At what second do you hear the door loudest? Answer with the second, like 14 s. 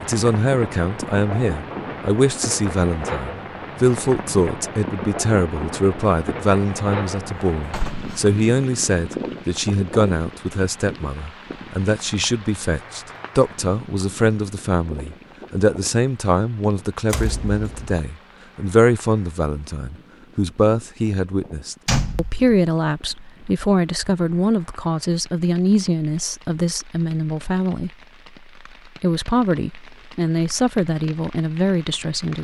22 s.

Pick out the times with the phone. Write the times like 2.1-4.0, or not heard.
not heard.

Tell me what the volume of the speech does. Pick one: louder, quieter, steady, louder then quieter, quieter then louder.
steady.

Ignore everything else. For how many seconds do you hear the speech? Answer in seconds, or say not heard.
31 s.